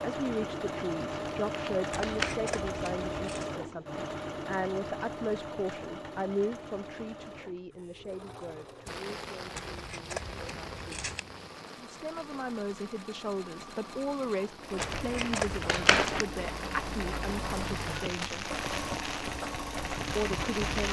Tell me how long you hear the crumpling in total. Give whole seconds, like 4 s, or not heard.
3 s.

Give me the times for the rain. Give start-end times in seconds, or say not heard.
8.8-20.8.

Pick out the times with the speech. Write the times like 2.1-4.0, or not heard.
0.0-11.1, 11.8-18.6, 20.1-20.8.